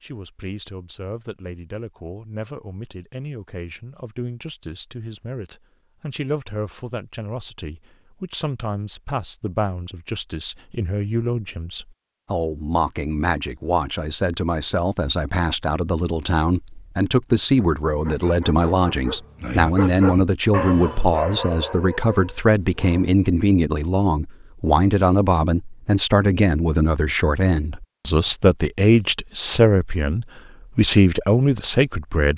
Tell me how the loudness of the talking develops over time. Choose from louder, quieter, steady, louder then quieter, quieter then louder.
louder.